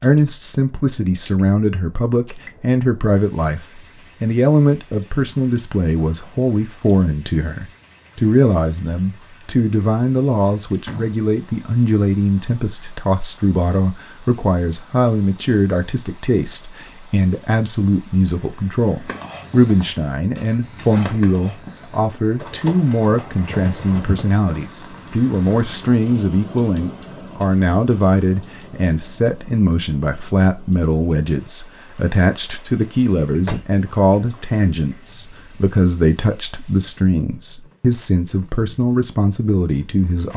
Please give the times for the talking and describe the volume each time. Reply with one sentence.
You can hear the talking from 0.0 to 40.3 s, at a steady volume.